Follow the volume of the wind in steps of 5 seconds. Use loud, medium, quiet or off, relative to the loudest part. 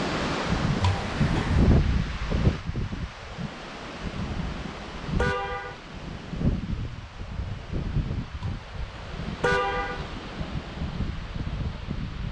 loud, medium, medium.